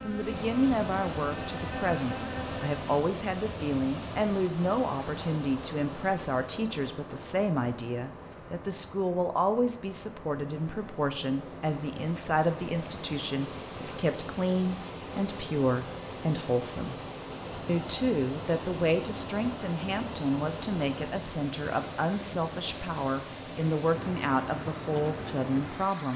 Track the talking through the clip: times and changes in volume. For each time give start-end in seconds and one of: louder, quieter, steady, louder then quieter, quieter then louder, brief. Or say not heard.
0.0-17.0 steady
17.6-26.1 steady.